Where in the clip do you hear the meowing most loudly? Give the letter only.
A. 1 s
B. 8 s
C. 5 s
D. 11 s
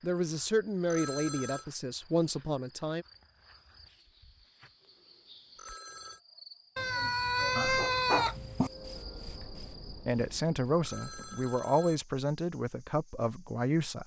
B.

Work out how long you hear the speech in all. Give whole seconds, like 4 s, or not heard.
8 s.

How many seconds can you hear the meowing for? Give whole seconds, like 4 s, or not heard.
2 s.